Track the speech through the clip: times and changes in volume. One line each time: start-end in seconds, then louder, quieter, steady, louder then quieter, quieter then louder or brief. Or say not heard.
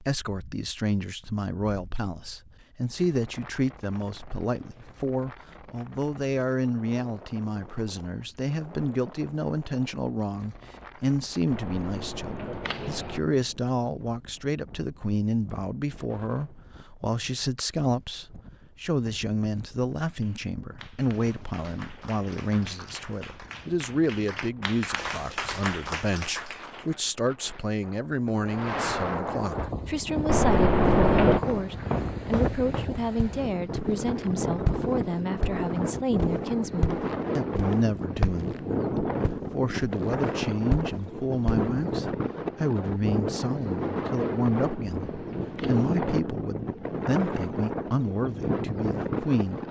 0.0-49.6 steady.